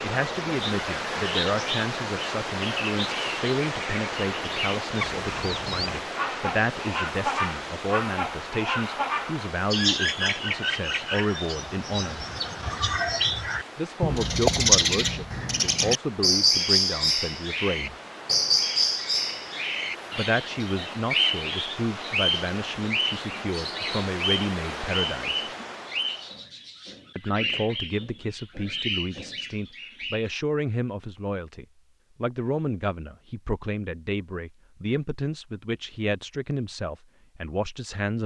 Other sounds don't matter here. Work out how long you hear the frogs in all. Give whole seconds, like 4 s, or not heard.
not heard.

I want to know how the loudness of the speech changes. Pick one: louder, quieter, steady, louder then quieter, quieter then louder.
steady.